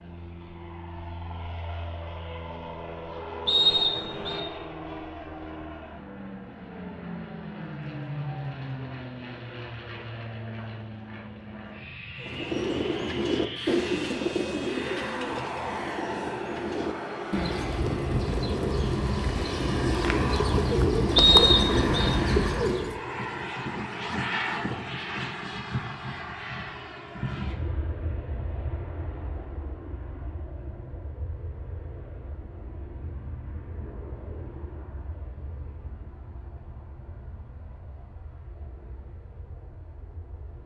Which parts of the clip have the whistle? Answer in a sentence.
You can hear the whistle from 3.5 to 4.4 s and from 21.1 to 22.1 s.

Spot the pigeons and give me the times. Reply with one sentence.
The pigeons can be heard from 12.2 to 23.0 s.